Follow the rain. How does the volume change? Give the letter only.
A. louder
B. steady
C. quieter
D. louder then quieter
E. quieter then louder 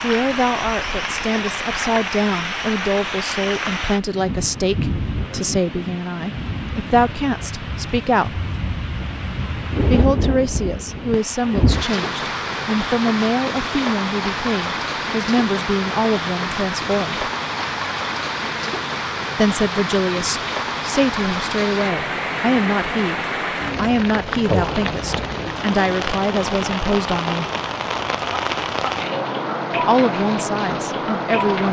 B.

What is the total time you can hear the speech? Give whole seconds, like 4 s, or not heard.
26 s.